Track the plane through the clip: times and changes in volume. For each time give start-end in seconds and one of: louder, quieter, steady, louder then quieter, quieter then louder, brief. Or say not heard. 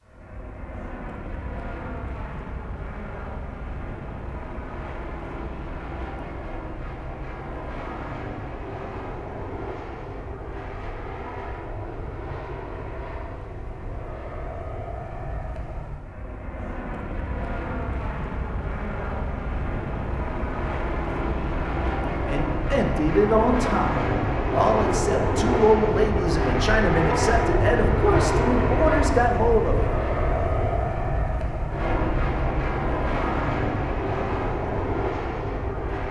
0.0-36.0 louder.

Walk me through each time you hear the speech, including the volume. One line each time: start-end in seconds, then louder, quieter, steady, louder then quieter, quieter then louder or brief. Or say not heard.
22.2-29.9 steady.